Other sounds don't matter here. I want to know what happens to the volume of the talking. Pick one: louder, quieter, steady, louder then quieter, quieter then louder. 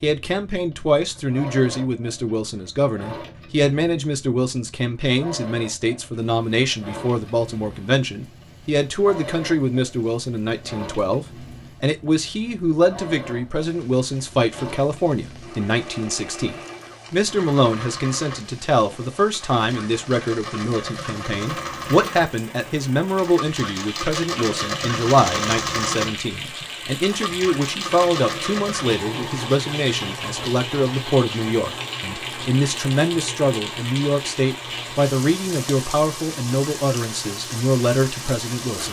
steady.